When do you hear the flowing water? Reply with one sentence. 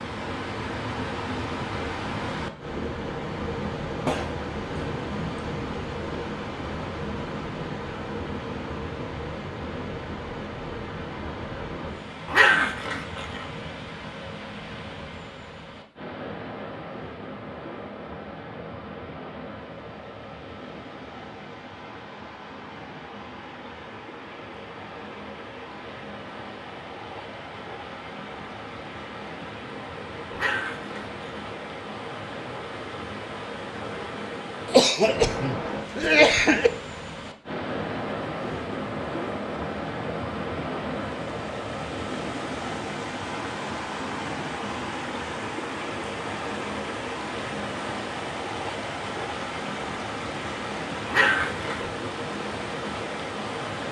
The flowing water can be heard from 0.0 to 53.8 s.